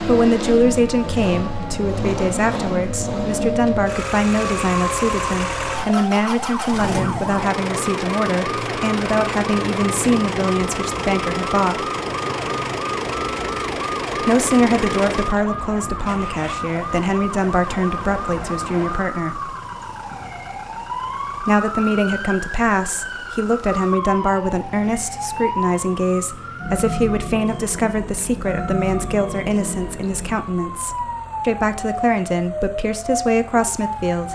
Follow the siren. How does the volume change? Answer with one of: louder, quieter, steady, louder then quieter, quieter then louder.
steady.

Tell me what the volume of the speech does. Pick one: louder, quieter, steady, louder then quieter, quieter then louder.
steady.